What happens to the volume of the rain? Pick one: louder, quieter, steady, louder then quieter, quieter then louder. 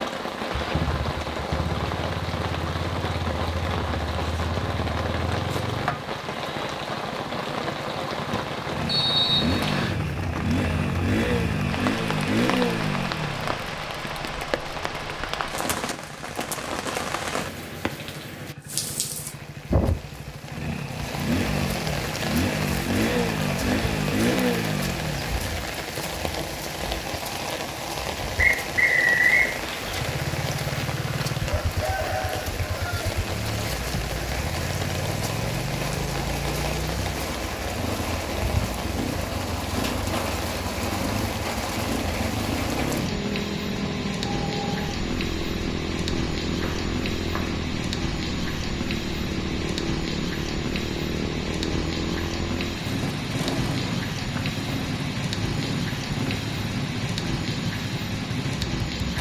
steady.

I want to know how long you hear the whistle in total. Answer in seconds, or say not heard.
3 s.